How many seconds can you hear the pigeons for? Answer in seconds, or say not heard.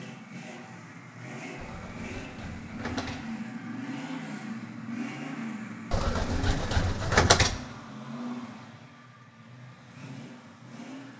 3 s.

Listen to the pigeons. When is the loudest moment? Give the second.
7 s.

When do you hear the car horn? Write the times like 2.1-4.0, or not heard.
not heard.